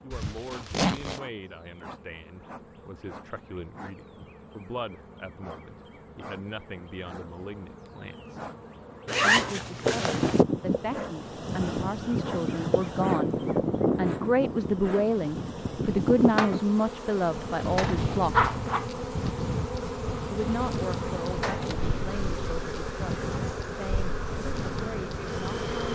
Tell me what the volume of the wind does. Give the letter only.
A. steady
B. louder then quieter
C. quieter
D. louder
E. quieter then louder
C.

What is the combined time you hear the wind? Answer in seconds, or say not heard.
16 s.